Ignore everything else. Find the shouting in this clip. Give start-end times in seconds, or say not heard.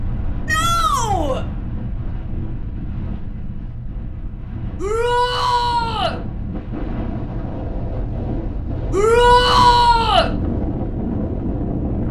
0.5-1.4, 4.8-6.2, 8.9-10.3.